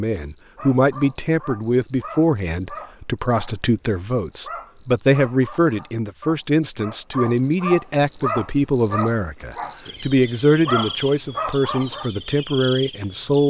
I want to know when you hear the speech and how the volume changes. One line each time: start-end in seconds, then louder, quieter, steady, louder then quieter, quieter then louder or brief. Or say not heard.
0.0-13.4 steady.